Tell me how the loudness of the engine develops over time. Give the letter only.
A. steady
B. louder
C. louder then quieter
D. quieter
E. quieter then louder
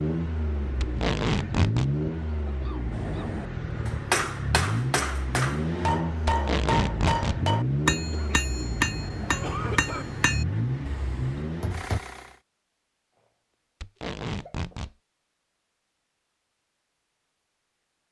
A.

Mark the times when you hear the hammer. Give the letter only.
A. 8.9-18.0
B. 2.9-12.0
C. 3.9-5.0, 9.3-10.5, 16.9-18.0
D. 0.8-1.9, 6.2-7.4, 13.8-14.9
B.